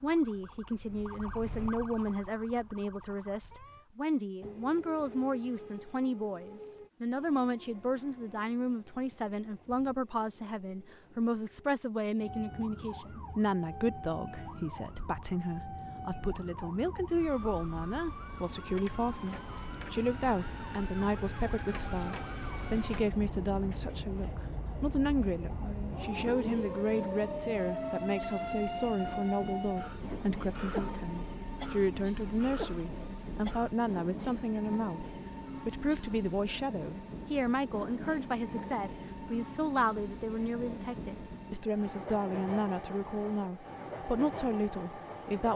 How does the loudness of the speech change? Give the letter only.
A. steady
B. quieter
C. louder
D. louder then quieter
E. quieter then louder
A.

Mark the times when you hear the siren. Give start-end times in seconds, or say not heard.
0.0-3.9, 12.2-33.8.